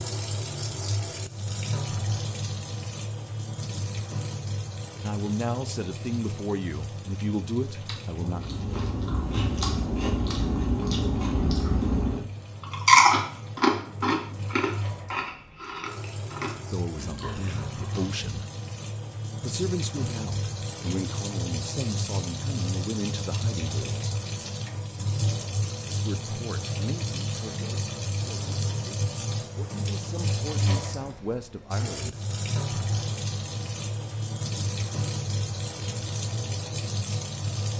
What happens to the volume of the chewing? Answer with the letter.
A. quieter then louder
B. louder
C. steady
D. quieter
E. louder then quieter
E.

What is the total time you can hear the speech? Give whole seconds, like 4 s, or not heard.
16 s.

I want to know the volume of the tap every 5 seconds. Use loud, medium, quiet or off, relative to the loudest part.
loud, medium, medium, medium, loud, loud, loud, loud.